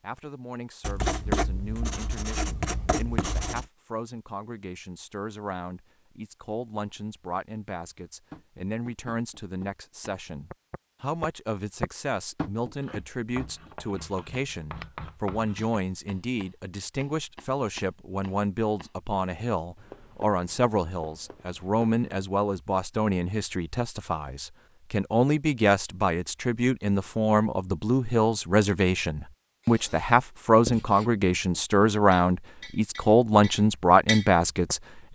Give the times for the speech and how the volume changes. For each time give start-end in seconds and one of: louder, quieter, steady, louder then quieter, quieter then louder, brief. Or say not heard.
0.0-35.0 louder.